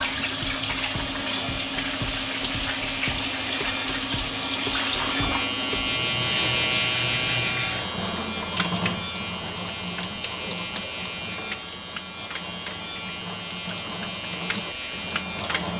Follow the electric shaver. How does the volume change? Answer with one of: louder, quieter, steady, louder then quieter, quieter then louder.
louder then quieter.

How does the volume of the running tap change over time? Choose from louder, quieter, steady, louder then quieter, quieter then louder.
quieter.